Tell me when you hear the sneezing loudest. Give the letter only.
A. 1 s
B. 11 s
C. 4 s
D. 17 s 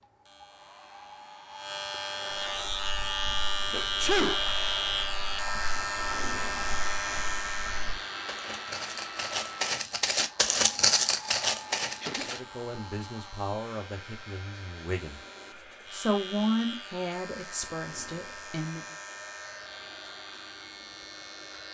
C.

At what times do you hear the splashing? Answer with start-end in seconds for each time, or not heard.
not heard.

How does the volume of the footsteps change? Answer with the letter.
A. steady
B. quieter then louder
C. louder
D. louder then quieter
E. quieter
C.